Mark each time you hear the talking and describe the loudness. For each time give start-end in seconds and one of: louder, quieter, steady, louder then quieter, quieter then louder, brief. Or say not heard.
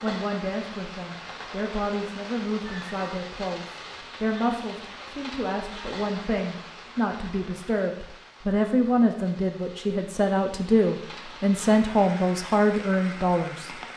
0.0-13.8 louder.